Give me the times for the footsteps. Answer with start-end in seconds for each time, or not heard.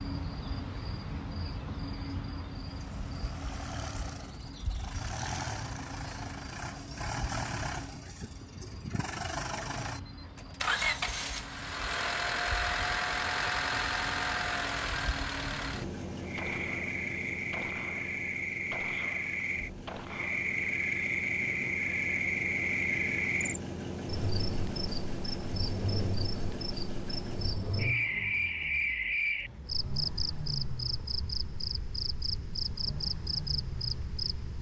not heard.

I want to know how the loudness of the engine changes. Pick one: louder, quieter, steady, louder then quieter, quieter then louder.
louder then quieter.